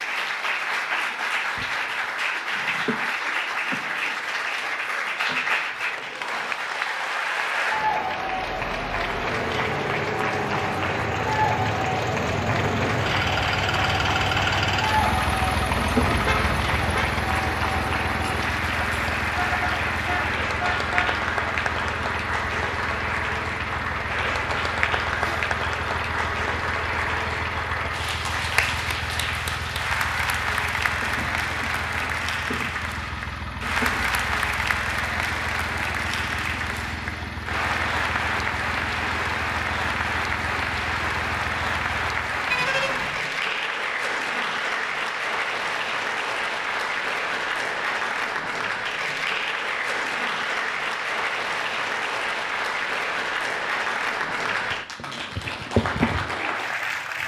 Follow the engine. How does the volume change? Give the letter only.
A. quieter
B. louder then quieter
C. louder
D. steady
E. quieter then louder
A.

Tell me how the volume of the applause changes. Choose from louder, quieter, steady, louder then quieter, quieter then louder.
steady.